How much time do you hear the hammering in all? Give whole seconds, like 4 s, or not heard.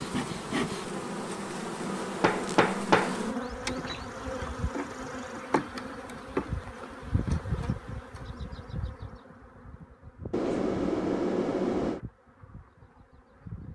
3 s.